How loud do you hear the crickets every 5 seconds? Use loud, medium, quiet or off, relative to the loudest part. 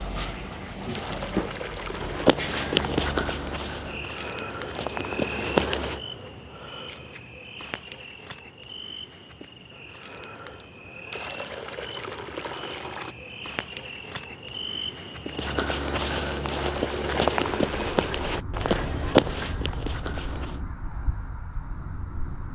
loud, medium, medium, medium, medium.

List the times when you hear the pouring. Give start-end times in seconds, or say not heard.
0.9-2.3, 11.1-13.2, 16.4-18.4.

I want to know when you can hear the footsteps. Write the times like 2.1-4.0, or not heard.
1.9-6.0, 15.3-20.6.